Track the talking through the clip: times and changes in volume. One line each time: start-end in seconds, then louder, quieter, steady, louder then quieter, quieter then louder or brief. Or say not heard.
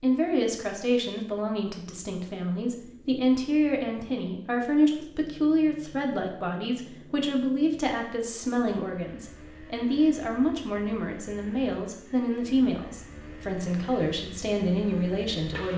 0.0-15.7 steady.